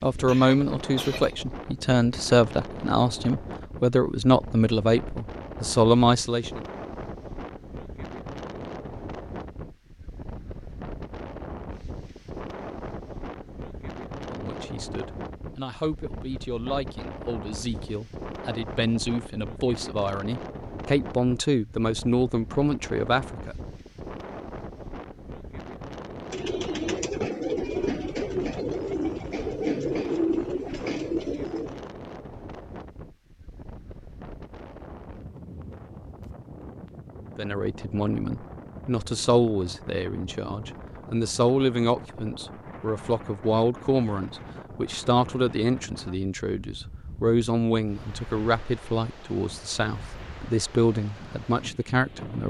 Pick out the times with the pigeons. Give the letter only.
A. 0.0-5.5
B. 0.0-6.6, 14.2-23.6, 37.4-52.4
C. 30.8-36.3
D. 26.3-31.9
D.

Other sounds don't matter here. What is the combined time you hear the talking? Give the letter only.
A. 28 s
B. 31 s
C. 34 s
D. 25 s
B.